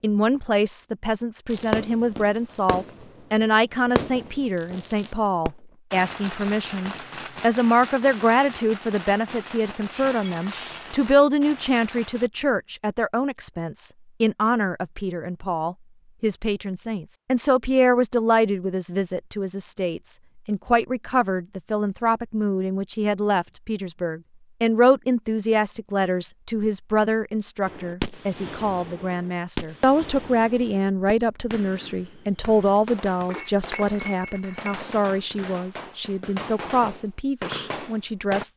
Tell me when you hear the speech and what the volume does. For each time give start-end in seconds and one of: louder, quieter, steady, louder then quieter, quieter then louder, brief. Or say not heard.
0.0-38.5 steady.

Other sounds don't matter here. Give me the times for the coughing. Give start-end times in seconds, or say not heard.
not heard.